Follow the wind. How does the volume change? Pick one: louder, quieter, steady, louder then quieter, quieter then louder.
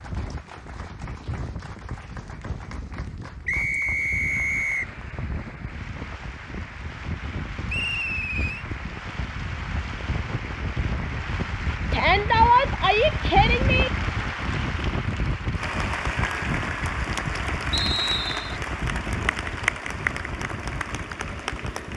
louder then quieter.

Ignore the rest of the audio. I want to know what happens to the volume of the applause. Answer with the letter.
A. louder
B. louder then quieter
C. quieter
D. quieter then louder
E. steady
A.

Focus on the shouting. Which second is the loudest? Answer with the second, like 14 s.
12 s.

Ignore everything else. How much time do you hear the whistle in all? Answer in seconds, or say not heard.
3 s.